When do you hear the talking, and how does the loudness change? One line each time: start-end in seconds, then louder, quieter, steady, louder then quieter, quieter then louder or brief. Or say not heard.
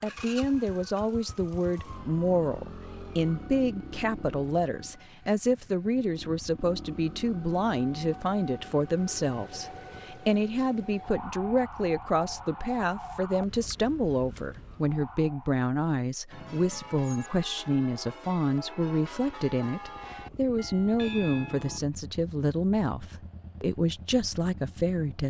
0.0-25.2 steady.